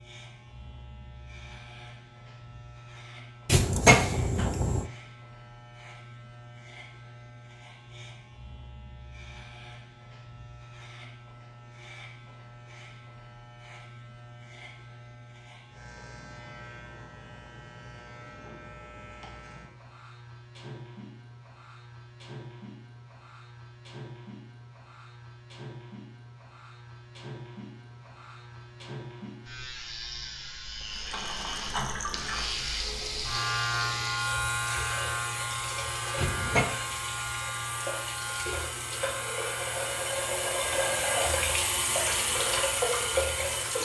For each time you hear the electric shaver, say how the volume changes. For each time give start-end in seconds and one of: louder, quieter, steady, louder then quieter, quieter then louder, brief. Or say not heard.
0.0-43.8 louder.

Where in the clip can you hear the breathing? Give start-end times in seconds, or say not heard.
not heard.